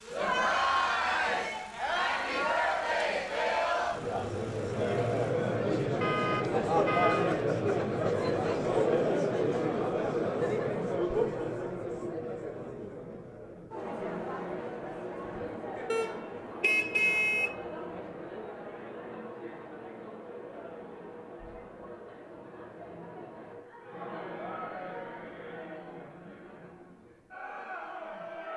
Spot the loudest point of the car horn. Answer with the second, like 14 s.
17 s.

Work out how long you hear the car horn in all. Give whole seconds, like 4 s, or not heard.
3 s.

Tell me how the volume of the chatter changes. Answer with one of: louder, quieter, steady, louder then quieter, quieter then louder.
quieter.